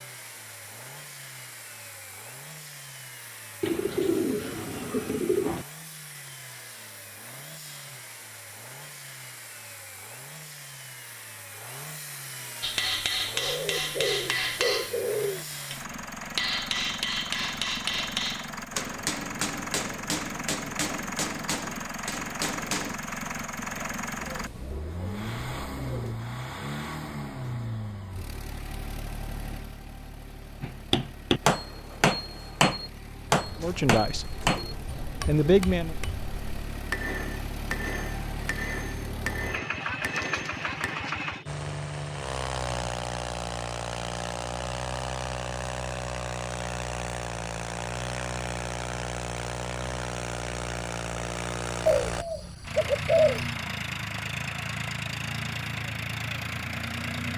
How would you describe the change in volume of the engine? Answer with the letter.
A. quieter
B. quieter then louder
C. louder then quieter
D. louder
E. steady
D.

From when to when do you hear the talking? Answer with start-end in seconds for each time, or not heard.
33.6-34.4, 35.2-36.0.